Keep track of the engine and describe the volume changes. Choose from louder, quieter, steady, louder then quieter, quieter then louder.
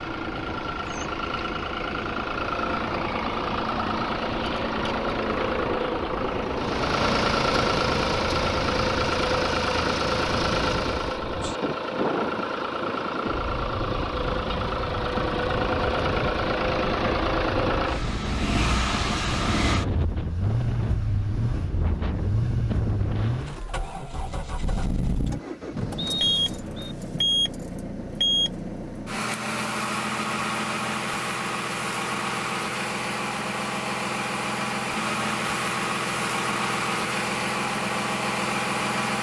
steady.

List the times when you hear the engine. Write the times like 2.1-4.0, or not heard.
0.0-39.1.